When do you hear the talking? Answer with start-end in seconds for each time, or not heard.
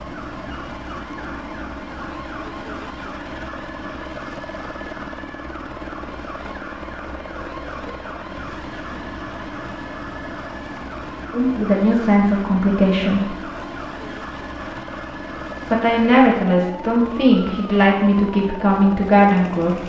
11.3-13.3, 15.7-19.8.